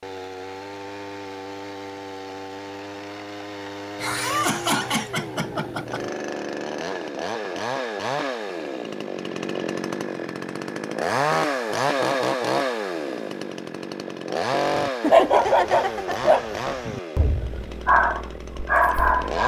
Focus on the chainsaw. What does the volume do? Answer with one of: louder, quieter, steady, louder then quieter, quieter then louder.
louder then quieter.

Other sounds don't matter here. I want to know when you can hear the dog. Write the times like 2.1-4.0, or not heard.
14.8-19.4.